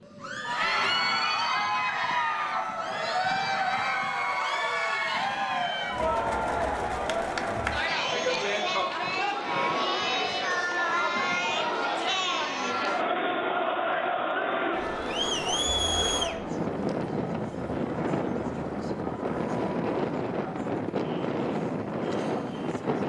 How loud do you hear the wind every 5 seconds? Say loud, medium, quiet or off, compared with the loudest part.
quiet, quiet, quiet, loud, loud.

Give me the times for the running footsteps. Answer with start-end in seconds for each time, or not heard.
not heard.